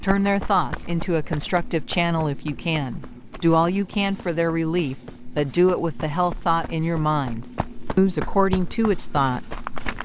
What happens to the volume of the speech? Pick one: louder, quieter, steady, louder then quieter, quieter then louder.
steady.